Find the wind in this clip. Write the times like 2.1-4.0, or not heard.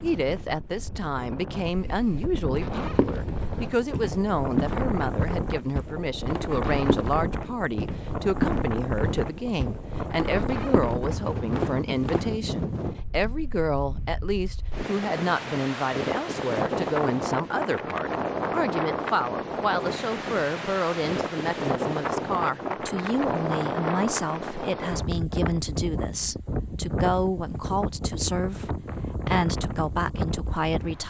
0.0-31.0.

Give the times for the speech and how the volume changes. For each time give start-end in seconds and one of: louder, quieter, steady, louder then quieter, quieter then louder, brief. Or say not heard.
0.0-31.0 steady.